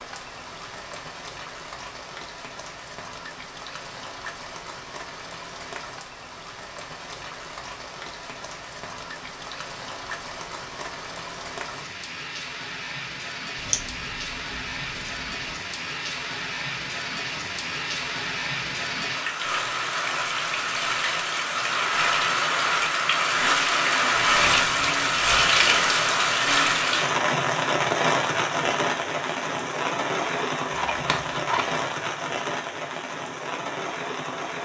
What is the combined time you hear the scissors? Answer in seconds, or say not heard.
3 s.